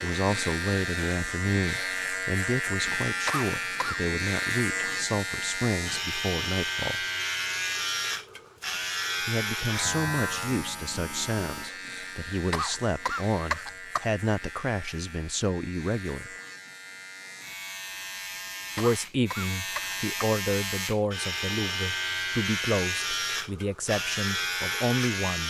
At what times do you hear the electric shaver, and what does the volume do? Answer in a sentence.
The electric shaver can be heard from 0.0 to 25.4 s, getting quieter then louder.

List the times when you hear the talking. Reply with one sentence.
The talking can be heard from 0.0 to 7.0 s, from 9.2 to 16.3 s and from 18.8 to 25.4 s.